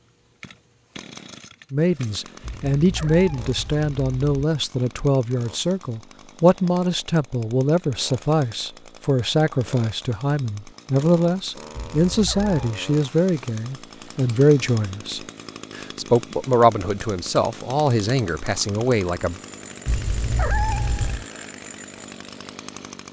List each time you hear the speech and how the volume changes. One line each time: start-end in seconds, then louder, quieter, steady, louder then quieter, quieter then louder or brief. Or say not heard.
1.7-19.4 steady.